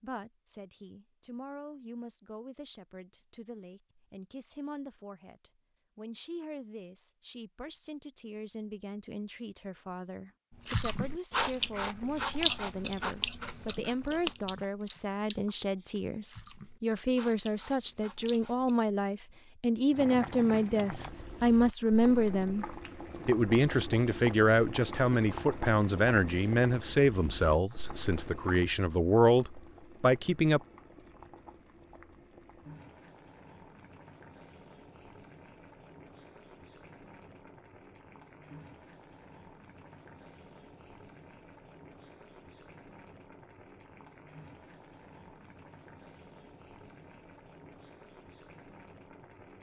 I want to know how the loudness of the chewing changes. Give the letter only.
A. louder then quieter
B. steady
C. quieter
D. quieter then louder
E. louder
C.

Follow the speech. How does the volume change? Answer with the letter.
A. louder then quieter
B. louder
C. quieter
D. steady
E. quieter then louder
B.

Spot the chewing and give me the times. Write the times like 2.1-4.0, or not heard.
10.7-18.8.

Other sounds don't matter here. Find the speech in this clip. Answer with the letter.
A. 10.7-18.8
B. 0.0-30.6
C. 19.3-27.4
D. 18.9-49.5
B.